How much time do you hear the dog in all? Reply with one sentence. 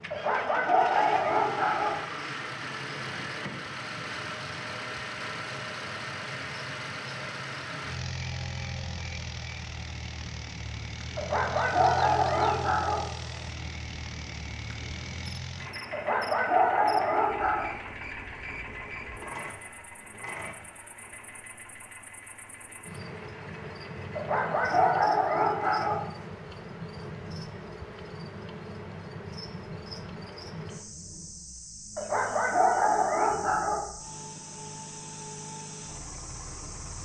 You can hear the dog for 9 seconds altogether.